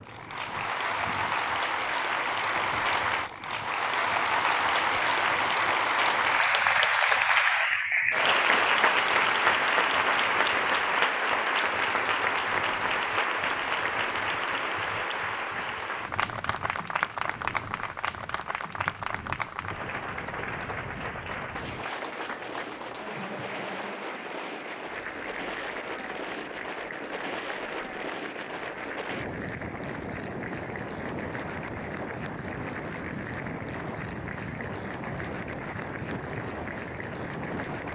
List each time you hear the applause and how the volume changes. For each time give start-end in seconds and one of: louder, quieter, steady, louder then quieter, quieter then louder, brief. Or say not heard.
0.0-37.9 quieter.